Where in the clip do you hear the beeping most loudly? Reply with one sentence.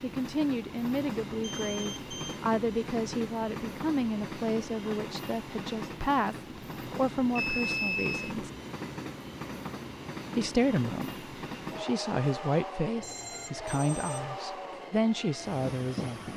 The loudest moment of the beeping is at 8 seconds.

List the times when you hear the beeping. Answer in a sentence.
The beeping can be heard from 1.4 to 2.4 s, from 6.9 to 8.3 s and from 13.0 to 14.3 s.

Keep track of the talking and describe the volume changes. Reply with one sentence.
The loudness of the talking stays about the same.